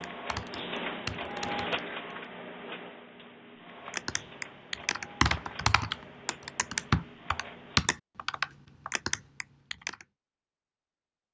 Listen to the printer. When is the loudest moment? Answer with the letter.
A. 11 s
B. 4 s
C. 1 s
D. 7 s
C.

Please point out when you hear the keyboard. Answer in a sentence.
The keyboard can be heard from 0.0 to 1.8 s and from 3.9 to 10.1 s.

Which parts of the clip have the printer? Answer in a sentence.
You can hear the printer from 0.0 to 7.8 s.